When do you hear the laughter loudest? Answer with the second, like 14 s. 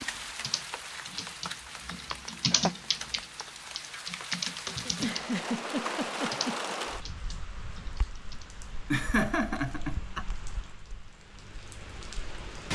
9 s.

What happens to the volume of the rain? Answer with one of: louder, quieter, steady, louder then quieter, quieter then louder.
louder then quieter.